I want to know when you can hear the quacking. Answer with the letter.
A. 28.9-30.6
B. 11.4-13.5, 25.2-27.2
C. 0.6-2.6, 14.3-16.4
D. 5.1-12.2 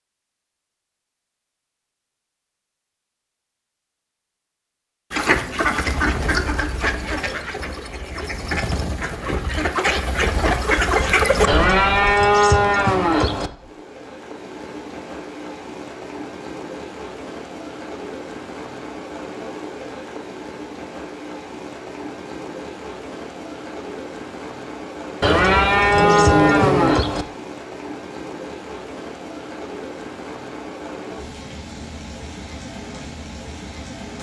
D.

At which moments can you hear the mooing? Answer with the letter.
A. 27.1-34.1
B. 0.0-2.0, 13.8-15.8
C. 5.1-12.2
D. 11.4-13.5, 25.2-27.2
D.